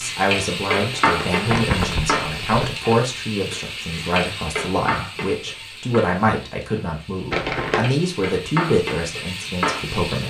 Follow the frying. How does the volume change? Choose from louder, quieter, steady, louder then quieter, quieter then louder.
quieter then louder.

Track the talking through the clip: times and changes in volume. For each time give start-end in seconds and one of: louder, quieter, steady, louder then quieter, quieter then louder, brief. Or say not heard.
0.0-10.2 steady.